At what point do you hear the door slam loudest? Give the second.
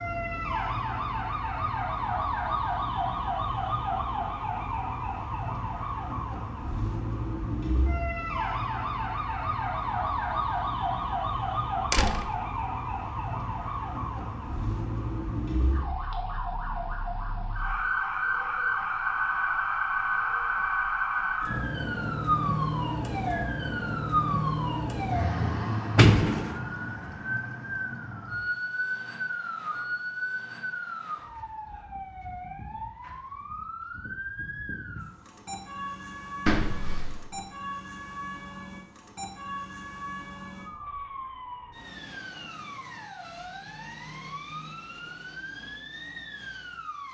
26 s.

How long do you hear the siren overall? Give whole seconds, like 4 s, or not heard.
47 s.